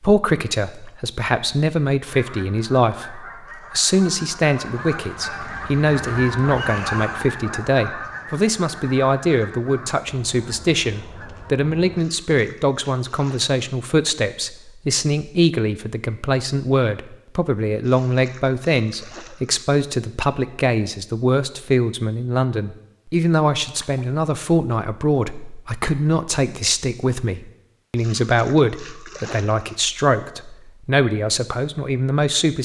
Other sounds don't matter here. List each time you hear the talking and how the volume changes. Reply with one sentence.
The talking can be heard from 0.0 to 32.5 s, at a steady volume.